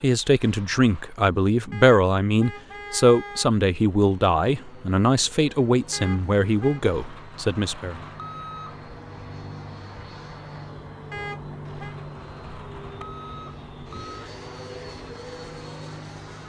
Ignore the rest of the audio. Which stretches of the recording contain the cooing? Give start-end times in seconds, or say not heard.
not heard.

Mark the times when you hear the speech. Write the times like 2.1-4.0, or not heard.
0.0-8.0.